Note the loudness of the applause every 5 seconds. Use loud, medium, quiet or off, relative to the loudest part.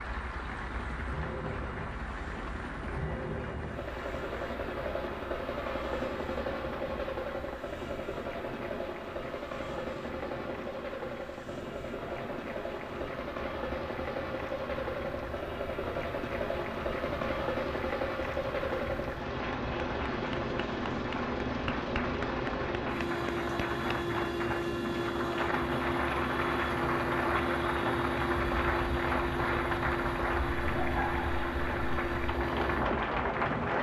medium, quiet, quiet, medium, medium, loud, loud.